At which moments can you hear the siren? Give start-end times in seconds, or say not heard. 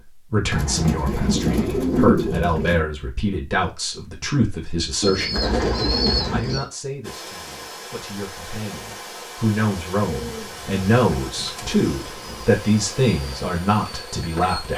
not heard.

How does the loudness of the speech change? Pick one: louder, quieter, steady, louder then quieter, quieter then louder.
quieter then louder.